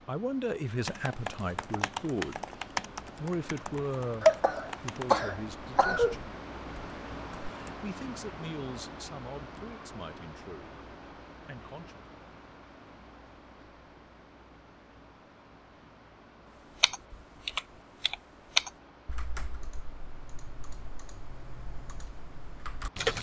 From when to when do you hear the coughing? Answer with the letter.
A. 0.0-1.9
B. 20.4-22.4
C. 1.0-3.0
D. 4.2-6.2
D.